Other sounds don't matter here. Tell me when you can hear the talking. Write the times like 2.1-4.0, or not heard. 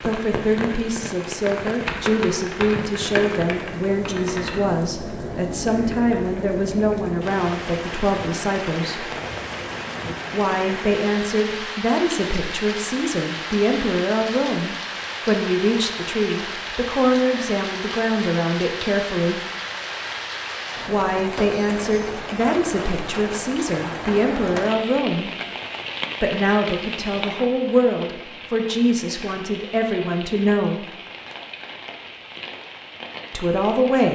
0.0-9.1, 10.3-19.4, 20.9-25.3, 26.2-30.9, 33.3-34.1.